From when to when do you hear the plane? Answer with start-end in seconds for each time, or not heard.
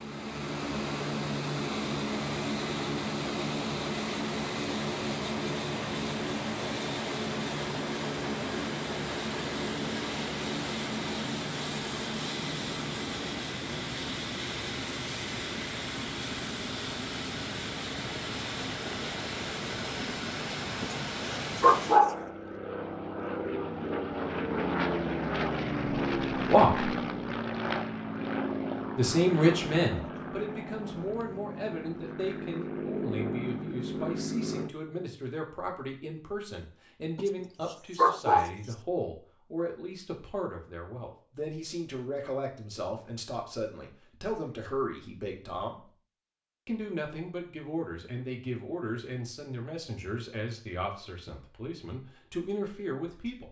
0.0-34.8.